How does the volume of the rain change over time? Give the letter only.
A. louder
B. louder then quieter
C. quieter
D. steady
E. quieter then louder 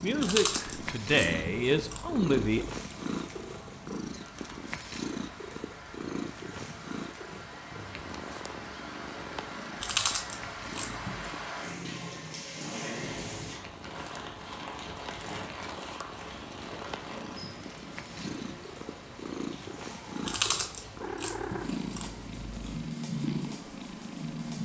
B.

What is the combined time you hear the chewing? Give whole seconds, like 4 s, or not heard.
7 s.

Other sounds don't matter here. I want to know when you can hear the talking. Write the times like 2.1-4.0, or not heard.
0.0-2.6.